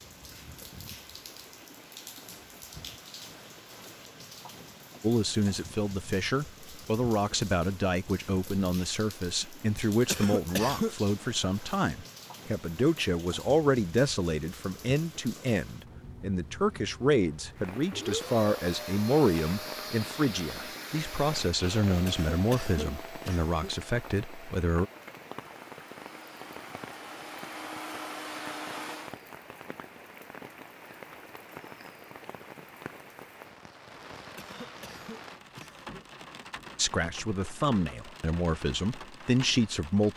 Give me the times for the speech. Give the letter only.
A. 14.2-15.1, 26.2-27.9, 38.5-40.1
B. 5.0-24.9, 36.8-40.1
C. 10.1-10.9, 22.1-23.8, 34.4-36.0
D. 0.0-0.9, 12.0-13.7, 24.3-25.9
B.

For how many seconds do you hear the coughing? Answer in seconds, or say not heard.
4 s.